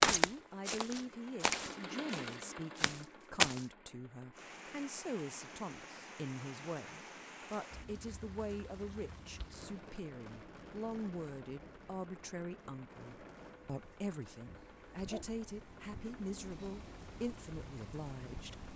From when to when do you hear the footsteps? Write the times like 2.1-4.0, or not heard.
0.0-3.6.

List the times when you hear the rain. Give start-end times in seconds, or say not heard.
4.3-18.7.